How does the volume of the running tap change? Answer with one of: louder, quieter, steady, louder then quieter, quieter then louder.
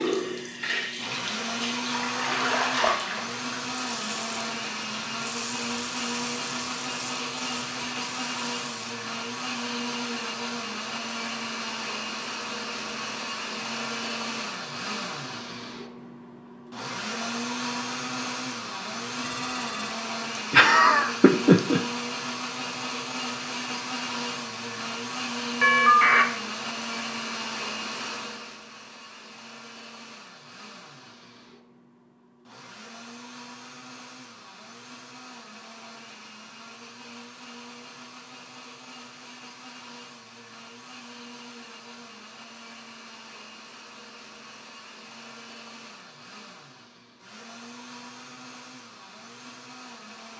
louder then quieter.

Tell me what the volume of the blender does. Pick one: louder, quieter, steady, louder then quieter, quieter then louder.
quieter.